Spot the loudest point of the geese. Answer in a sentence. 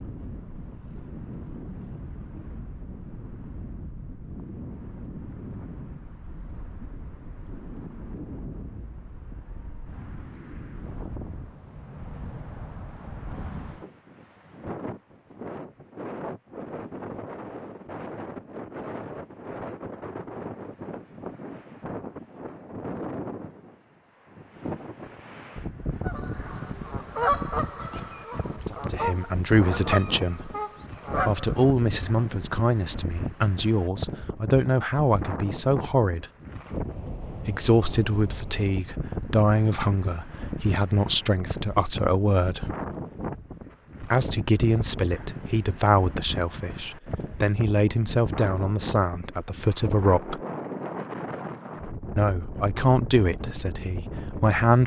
The volume of the geese peaks at 27 seconds.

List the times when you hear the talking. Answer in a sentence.
The talking can be heard from 28.6 to 30.5 s, from 31.2 to 36.2 s, from 37.4 to 42.7 s, from 44.0 to 50.4 s and from 52.1 to 54.8 s.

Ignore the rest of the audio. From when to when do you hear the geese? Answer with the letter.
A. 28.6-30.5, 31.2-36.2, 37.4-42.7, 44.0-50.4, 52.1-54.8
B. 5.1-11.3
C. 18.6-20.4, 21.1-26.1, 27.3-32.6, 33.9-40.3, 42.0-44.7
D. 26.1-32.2
D.